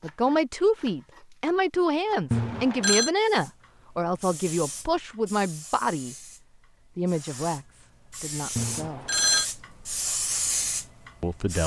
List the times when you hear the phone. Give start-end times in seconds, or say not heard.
2.3-3.1, 8.6-9.4.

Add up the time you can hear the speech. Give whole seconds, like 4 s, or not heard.
9 s.